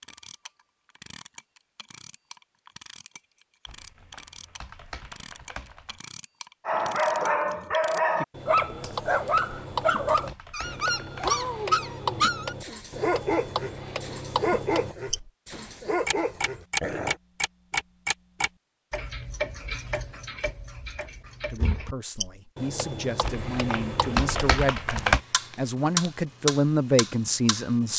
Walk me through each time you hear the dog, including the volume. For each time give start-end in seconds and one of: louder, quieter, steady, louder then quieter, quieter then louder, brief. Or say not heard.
6.7-17.1 quieter.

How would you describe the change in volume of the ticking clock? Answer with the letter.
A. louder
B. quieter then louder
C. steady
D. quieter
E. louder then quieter
A.